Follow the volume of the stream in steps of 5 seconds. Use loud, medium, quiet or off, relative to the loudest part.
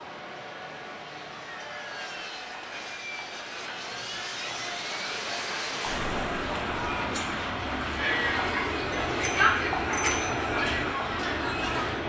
medium, loud, off.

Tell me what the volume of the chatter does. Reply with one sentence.
The loudness of the chatter goes up.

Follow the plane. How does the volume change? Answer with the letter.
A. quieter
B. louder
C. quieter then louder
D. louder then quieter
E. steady
B.